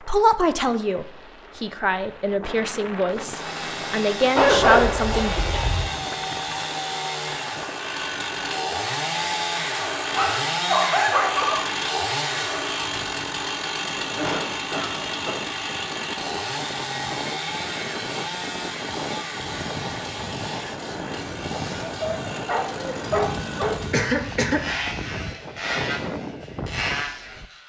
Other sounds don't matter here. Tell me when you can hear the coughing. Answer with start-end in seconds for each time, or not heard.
5.1-6.1, 13.8-15.4, 23.9-24.6.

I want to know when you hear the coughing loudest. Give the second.
24 s.